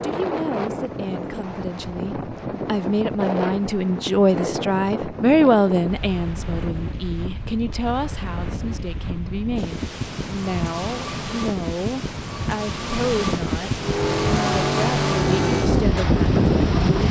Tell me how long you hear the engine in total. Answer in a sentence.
You can hear the engine for 3 seconds altogether.